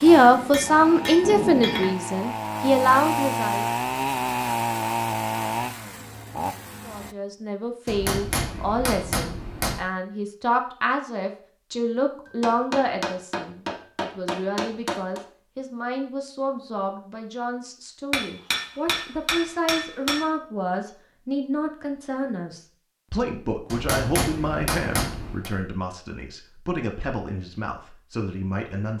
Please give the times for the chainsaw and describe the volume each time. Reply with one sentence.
You can hear the chainsaw from 0.0 to 7.2 s, getting louder then quieter.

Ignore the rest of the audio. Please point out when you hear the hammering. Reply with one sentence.
You can hear the hammering from 0.1 to 1.9 s, from 7.8 to 9.8 s, from 12.2 to 15.2 s, from 18.1 to 20.2 s and from 23.7 to 25.5 s.